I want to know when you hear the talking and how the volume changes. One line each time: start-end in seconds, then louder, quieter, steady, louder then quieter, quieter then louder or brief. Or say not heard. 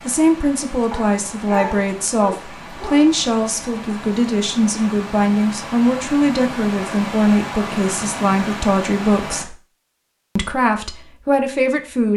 0.1-9.6 steady
10.3-12.1 brief.